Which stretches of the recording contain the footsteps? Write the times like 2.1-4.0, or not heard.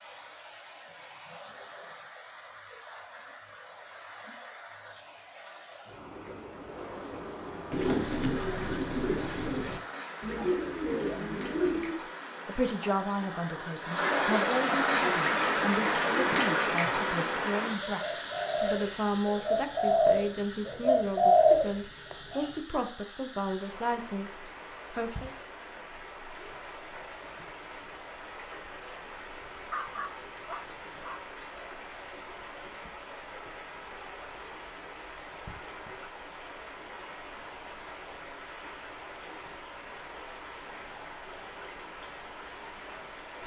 not heard.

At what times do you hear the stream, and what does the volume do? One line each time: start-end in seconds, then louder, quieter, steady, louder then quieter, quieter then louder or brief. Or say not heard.
0.0-43.4 louder then quieter.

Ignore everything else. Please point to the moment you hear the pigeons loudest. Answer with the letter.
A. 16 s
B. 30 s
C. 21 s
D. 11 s
C.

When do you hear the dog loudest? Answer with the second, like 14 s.
30 s.